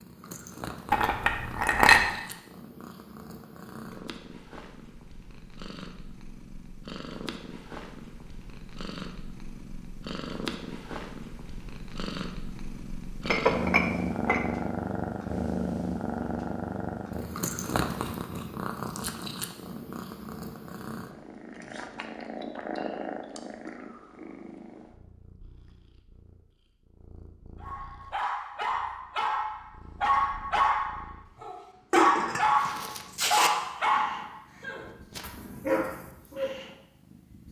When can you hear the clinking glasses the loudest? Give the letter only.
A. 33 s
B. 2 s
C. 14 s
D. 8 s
B.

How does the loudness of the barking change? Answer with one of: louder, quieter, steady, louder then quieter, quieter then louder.
louder then quieter.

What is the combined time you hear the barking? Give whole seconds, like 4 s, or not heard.
9 s.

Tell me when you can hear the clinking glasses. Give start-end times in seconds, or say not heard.
0.9-2.0, 13.2-14.4, 31.9-33.5.